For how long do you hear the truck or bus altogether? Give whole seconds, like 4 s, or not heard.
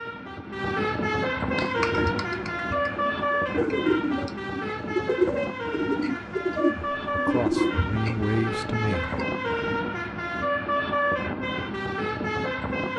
13 s.